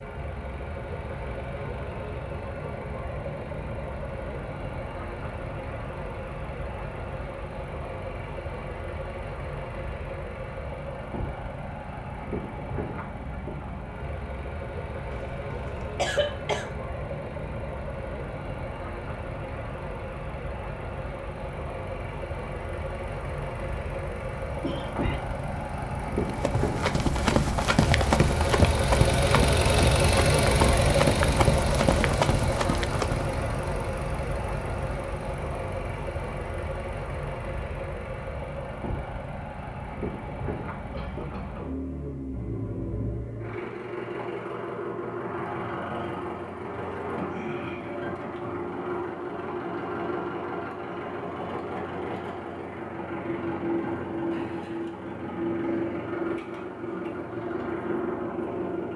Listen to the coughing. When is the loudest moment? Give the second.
16 s.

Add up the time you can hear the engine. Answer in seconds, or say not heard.
59 s.